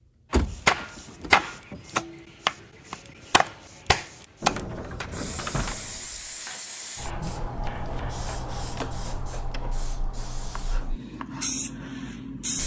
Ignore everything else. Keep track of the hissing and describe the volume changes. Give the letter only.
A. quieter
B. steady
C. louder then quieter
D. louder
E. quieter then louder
D.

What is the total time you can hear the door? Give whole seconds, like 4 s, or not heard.
5 s.